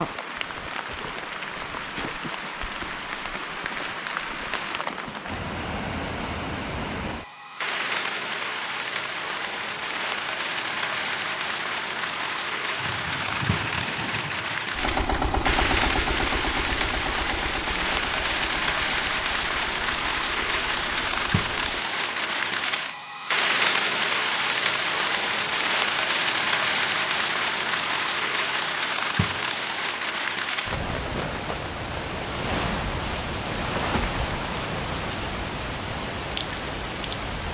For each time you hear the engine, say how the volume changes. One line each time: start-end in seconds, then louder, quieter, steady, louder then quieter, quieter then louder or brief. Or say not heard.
12.8-21.9 louder then quieter.